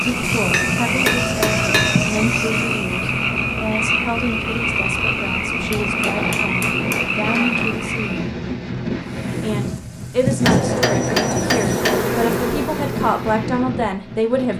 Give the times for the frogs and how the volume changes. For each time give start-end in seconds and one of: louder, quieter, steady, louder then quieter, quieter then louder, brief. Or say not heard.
0.0-8.3 steady.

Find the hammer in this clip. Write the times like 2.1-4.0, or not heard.
0.5-2.0, 5.7-7.5, 10.4-12.1.